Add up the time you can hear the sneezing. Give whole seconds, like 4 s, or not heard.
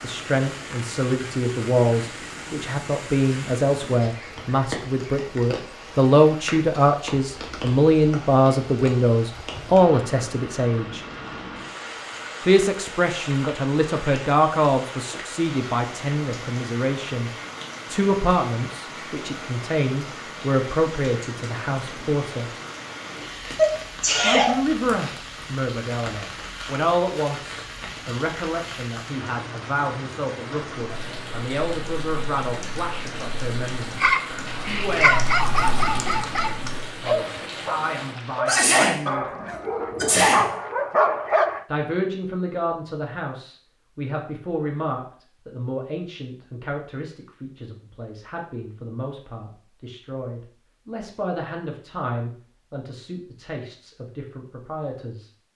3 s.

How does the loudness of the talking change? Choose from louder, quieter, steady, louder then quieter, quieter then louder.
quieter.